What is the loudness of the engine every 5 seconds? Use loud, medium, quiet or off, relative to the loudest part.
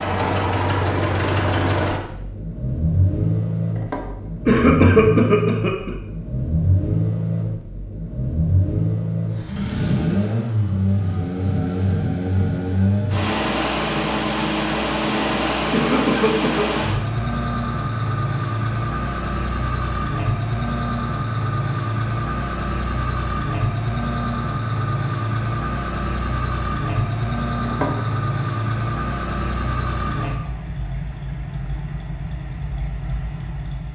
loud, loud, loud, loud, loud, loud, medium.